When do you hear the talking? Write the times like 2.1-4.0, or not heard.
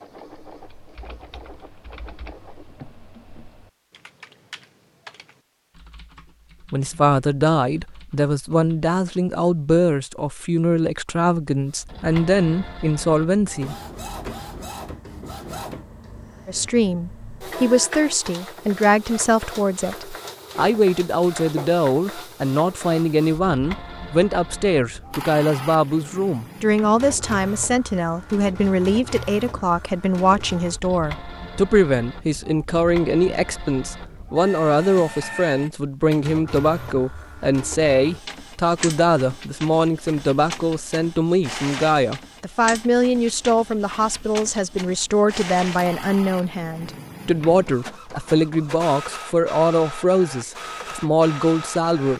6.7-13.8, 16.4-52.1.